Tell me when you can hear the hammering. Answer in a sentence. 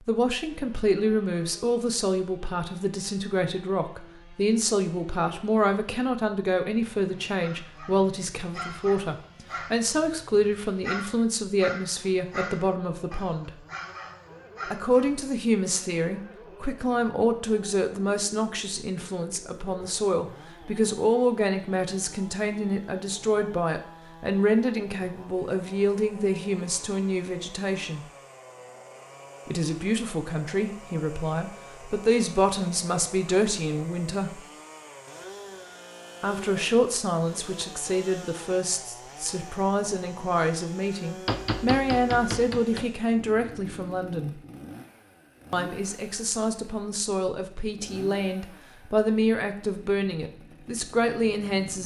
You can hear the hammering from 41.2 to 42.9 s.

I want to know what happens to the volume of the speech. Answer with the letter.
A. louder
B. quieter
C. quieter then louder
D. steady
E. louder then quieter
D.